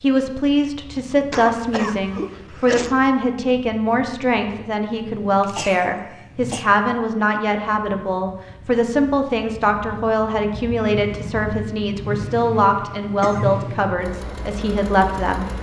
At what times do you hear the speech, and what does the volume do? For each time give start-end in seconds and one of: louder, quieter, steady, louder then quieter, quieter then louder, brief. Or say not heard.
0.0-15.4 steady.